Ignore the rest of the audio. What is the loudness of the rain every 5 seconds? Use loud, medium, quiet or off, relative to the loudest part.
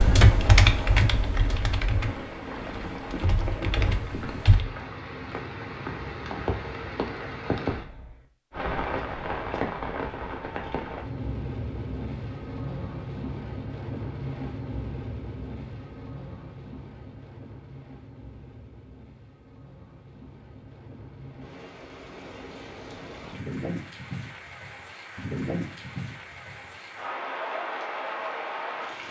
loud, loud, loud, medium, medium, loud.